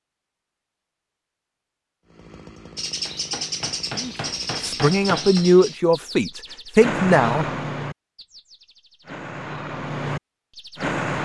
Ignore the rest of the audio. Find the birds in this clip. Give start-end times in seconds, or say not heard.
2.8-11.2.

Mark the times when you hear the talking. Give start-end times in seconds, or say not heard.
3.9-7.5.